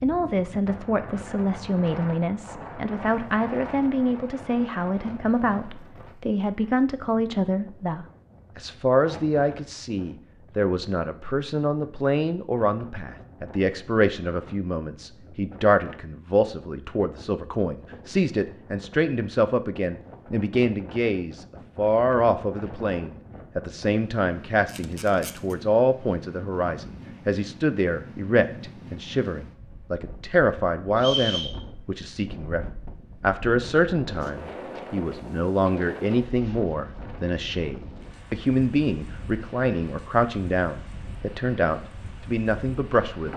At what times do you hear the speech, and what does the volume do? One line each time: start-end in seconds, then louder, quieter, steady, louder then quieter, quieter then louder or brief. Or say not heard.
0.0-43.3 steady.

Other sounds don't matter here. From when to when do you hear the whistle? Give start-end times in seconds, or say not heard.
30.9-31.6.